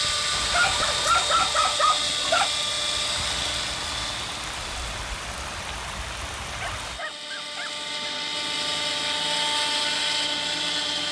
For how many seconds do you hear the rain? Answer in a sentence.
The rain can be heard for 7 seconds in total.